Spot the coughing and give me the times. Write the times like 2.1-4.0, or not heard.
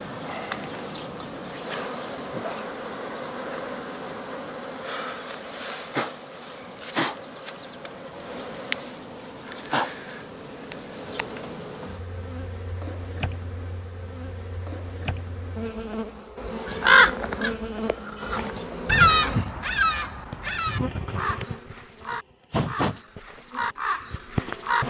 not heard.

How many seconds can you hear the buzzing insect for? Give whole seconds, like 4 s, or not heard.
25 s.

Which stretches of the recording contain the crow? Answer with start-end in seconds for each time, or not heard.
16.6-24.8.